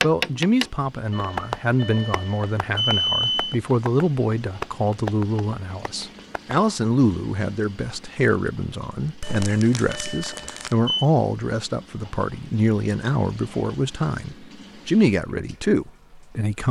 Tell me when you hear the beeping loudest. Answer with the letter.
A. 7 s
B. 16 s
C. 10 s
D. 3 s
D.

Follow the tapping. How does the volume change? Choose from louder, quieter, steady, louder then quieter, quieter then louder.
quieter then louder.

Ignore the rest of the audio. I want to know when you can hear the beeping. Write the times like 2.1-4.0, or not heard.
1.1-3.6, 9.2-11.1.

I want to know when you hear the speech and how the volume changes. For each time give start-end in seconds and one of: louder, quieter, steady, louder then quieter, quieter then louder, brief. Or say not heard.
0.0-16.6 steady.